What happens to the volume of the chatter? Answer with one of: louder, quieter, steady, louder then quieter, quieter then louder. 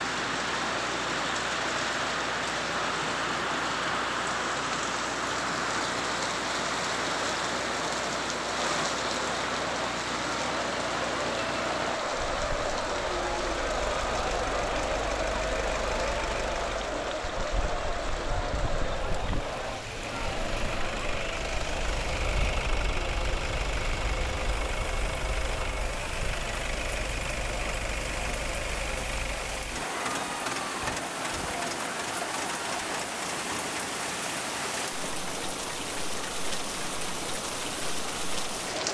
louder then quieter.